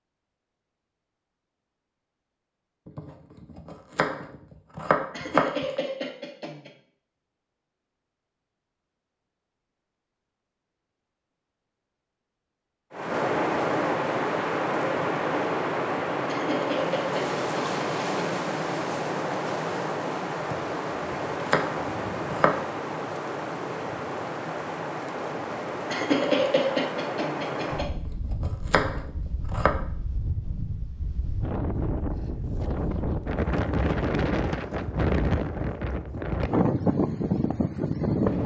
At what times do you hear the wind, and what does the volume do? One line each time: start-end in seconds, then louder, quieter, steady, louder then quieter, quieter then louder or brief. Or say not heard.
12.9-38.4 quieter then louder.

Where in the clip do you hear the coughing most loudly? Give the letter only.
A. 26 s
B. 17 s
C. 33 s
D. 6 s
A.